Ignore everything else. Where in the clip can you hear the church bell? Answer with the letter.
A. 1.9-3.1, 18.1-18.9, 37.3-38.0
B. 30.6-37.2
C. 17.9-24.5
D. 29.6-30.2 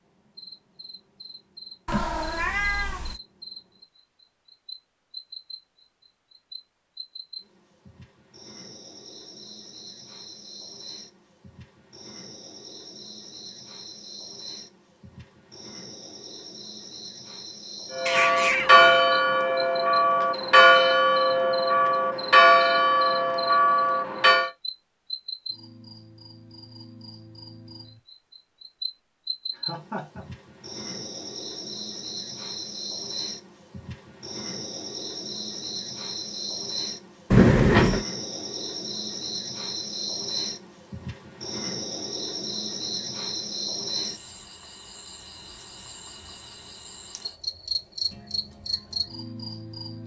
C.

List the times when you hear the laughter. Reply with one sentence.
You can hear the laughter from 29.6 to 30.2 s.